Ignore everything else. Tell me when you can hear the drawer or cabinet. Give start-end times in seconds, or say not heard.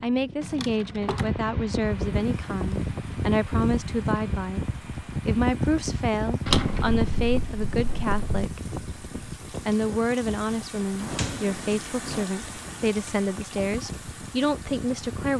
0.4-1.4, 6.5-8.2, 11.0-12.2.